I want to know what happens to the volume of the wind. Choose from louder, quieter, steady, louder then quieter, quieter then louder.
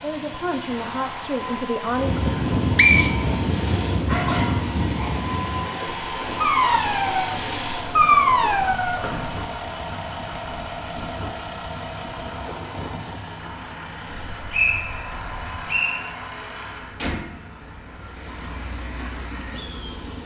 quieter.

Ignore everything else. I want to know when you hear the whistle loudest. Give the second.
3 s.